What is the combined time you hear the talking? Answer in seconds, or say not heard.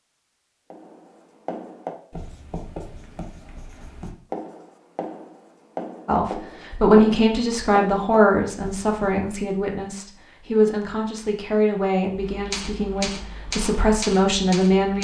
9 s.